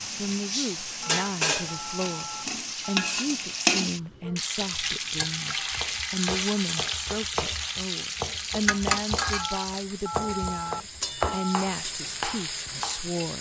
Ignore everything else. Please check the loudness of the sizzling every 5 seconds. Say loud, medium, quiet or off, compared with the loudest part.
loud, loud, medium.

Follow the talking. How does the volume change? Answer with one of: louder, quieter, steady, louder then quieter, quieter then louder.
steady.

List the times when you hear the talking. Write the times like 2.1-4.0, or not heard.
0.1-13.3.